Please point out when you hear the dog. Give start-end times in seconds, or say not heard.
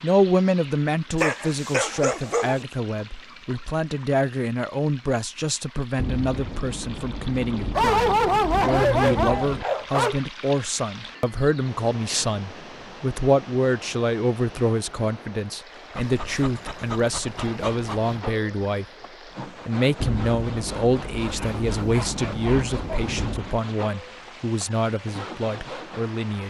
1.2-2.5, 7.8-10.2, 15.9-18.2, 21.2-23.1.